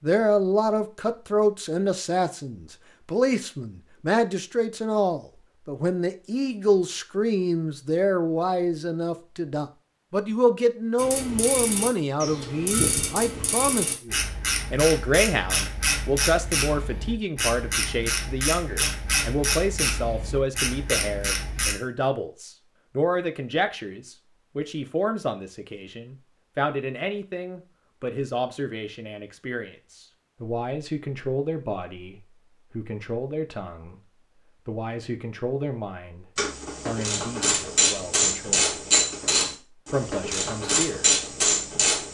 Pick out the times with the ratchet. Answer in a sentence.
You can hear the ratchet from 10.9 to 21.8 s and from 36.4 to 42.0 s.